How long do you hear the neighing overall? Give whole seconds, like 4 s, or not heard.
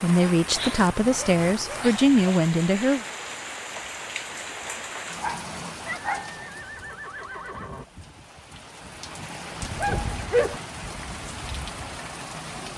2 s.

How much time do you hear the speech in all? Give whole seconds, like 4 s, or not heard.
3 s.